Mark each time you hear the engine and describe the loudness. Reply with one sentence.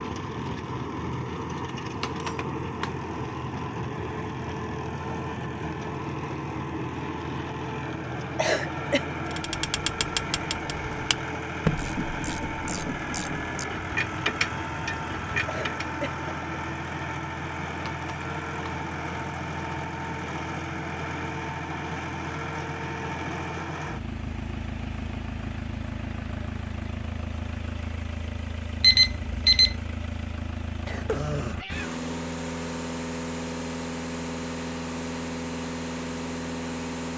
The engine can be heard from 0.0 to 37.1 s, at a steady volume.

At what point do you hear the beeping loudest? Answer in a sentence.
The loudest moment of the beeping is at 29 seconds.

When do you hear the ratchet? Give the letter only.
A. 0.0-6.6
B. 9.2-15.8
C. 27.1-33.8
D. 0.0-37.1
B.